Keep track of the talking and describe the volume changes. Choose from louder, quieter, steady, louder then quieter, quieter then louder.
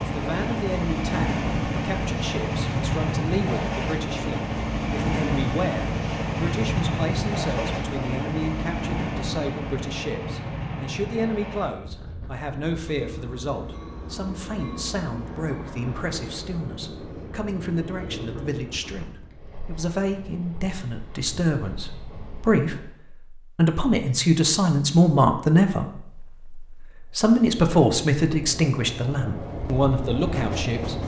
louder.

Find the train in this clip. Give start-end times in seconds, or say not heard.
0.0-23.0, 27.1-31.0.